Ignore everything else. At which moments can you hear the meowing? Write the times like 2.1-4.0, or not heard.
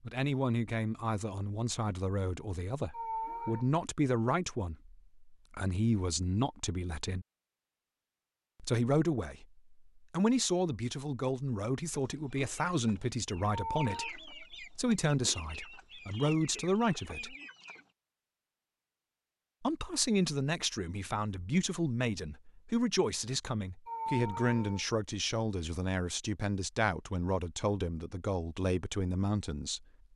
2.9-3.7, 13.5-14.1, 23.9-24.9.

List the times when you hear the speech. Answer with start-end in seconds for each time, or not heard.
0.0-7.2, 8.6-17.4, 19.6-29.9.